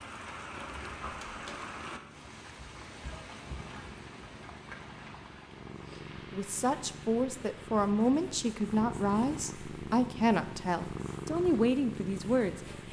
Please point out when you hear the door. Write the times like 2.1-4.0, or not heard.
1.1-1.8.